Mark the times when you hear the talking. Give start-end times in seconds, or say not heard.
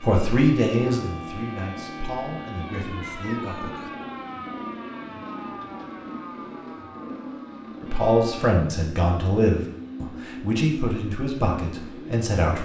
0.0-3.9, 7.8-12.6.